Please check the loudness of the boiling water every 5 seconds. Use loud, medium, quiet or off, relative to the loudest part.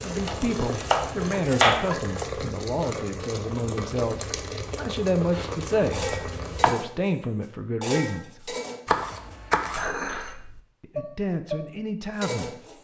loud, loud, off.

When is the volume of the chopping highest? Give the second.
2 s.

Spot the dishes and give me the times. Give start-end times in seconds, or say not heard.
5.3-12.7.